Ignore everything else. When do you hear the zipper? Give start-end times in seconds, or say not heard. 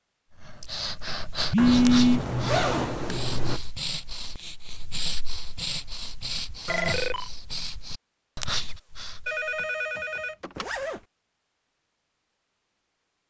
1.6-3.6, 10.6-11.1.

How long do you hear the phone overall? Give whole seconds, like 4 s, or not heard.
3 s.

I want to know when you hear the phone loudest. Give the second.
2 s.